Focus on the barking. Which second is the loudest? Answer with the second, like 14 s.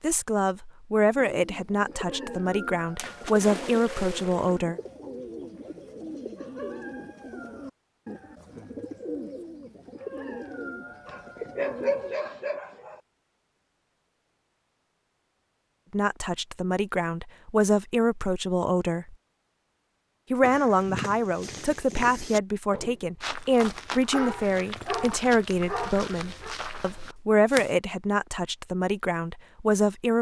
12 s.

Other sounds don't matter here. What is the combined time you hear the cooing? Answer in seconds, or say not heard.
11 s.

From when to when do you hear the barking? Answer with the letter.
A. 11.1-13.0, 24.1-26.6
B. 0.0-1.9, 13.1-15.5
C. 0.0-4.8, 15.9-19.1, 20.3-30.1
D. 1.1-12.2
A.